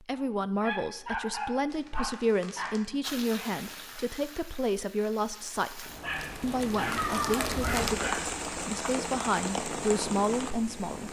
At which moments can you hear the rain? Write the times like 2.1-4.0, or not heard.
3.0-11.0.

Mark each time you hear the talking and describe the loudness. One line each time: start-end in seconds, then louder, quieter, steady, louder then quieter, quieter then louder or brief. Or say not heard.
0.0-11.0 steady.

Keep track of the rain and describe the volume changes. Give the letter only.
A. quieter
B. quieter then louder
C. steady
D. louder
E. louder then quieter
D.